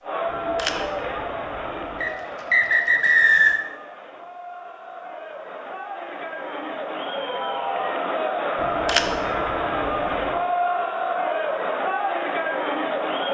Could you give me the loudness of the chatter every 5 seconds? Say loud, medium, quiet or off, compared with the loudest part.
medium, loud, loud.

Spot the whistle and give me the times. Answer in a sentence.
The whistle can be heard from 2.0 to 3.6 s.